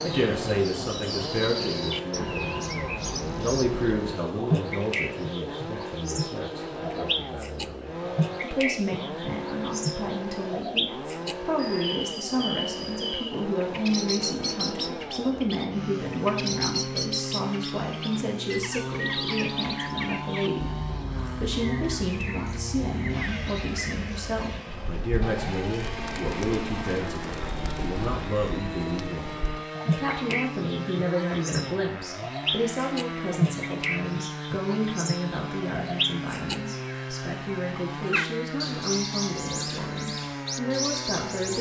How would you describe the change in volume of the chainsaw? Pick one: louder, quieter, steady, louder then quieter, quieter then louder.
steady.